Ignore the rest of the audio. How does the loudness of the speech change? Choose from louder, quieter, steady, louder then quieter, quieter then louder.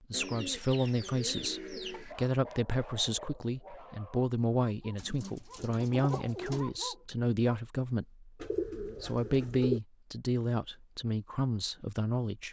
steady.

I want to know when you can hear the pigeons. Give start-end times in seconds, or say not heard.
0.1-2.1, 5.0-6.7, 8.4-9.8.